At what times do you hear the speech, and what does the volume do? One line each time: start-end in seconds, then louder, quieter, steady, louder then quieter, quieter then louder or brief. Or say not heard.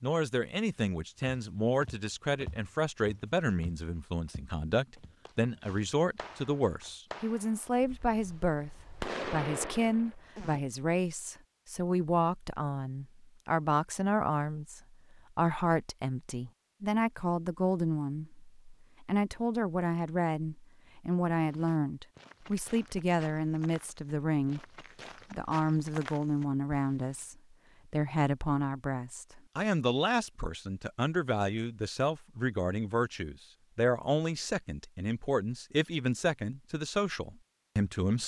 0.0-24.6 steady
25.3-38.2 steady.